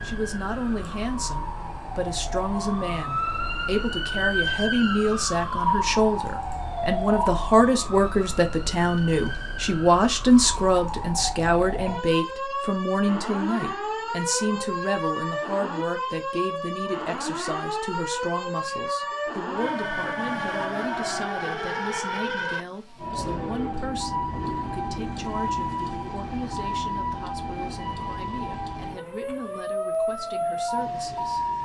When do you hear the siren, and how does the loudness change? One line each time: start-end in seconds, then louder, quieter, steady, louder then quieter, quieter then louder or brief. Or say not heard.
0.0-31.5 steady.